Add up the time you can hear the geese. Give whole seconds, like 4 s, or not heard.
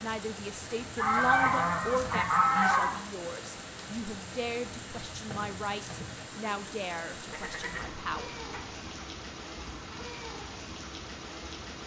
4 s.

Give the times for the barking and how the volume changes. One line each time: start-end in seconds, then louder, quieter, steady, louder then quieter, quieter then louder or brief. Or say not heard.
not heard.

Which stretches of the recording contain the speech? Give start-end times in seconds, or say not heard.
0.0-8.4.